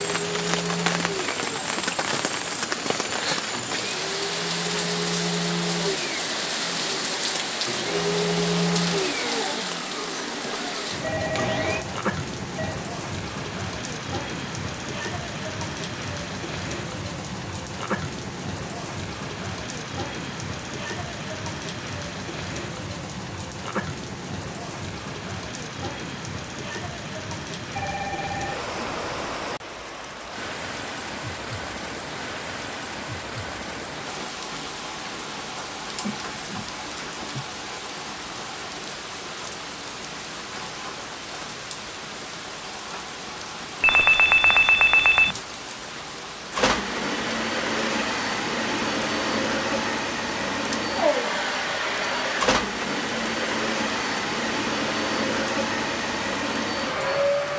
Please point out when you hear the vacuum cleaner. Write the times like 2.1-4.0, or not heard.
0.0-11.8, 46.5-57.5.